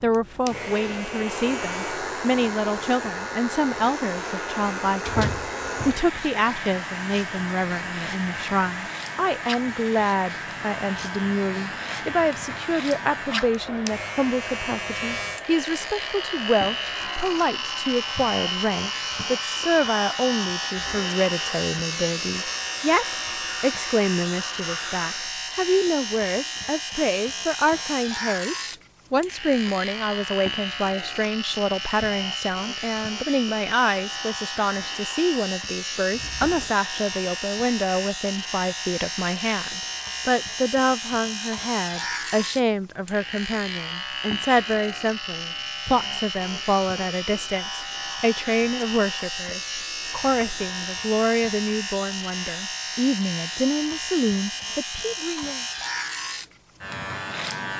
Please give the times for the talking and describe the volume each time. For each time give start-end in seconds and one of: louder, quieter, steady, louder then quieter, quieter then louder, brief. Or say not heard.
0.0-55.6 steady.